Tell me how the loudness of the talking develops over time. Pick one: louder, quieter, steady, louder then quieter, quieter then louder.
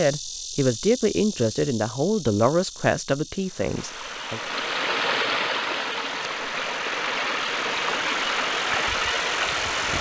quieter.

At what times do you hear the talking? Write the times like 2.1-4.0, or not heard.
0.0-4.4.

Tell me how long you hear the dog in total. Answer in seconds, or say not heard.
not heard.